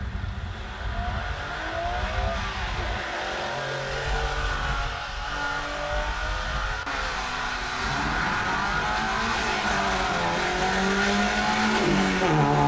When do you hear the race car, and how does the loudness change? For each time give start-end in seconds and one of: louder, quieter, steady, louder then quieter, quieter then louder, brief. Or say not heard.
0.0-12.6 louder.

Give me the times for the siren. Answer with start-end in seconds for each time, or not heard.
not heard.